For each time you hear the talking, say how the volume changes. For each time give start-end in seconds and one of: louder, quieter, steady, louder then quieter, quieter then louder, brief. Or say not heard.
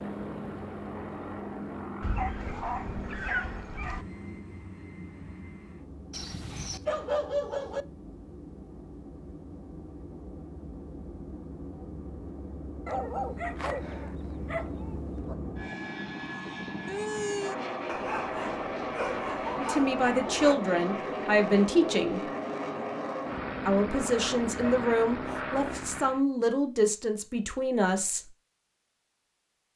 19.6-22.2 brief
23.6-28.3 steady.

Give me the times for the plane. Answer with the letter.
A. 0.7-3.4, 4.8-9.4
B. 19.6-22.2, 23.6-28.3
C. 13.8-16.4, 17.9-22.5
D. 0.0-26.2
D.